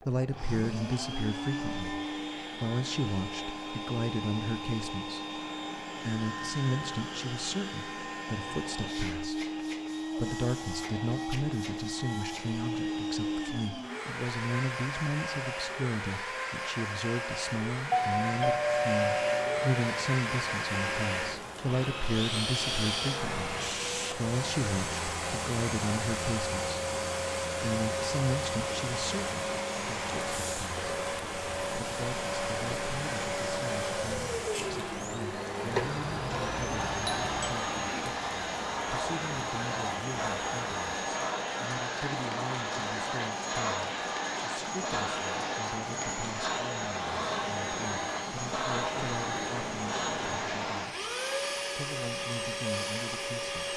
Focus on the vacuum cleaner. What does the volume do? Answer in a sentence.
The volume of the vacuum cleaner stays about the same.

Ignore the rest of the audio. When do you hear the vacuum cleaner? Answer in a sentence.
You can hear the vacuum cleaner from 0.0 to 53.7 s.